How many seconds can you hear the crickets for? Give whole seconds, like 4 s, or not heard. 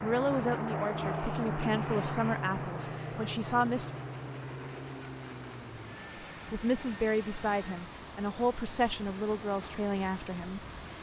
not heard.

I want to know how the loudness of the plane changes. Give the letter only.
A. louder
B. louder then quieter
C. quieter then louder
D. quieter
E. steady
D.